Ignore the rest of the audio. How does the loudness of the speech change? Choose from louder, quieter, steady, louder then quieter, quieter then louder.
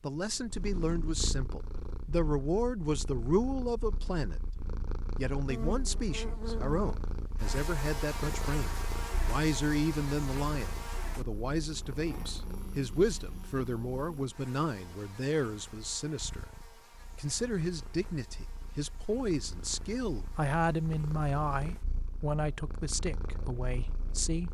steady.